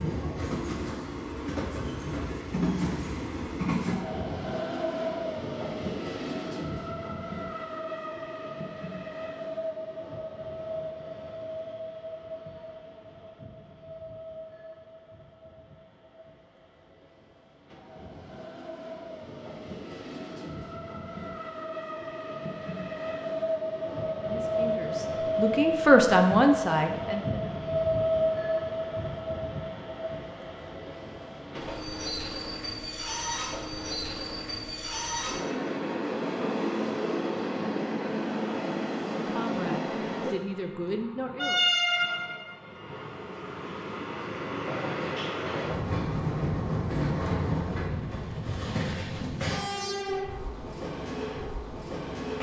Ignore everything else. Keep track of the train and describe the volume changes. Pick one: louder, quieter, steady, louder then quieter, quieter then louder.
quieter then louder.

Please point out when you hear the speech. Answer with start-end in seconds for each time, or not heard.
23.9-27.4, 39.2-41.6.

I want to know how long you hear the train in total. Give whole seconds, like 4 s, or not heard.
52 s.